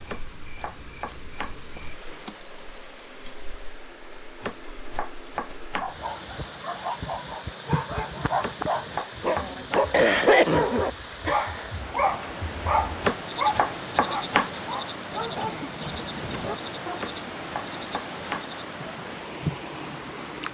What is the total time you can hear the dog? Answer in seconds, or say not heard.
11 s.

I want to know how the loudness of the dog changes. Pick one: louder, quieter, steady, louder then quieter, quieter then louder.
louder then quieter.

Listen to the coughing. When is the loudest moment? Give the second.
10 s.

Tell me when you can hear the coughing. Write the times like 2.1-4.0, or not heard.
2.0-2.8, 9.9-11.7, 15.3-16.6.